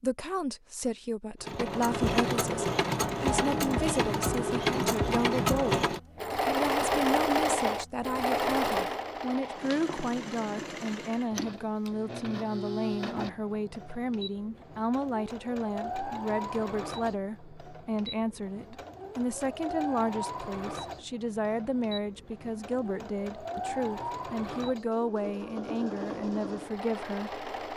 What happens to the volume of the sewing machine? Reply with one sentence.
The loudness of the sewing machine goes down.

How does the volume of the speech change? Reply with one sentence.
The volume of the speech stays about the same.